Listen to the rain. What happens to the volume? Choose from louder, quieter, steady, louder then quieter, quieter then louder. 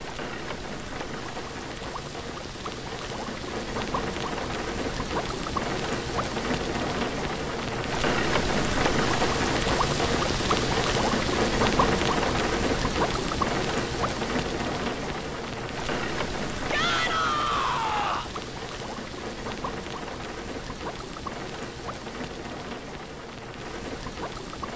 louder then quieter.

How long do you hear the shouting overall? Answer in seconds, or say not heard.
2 s.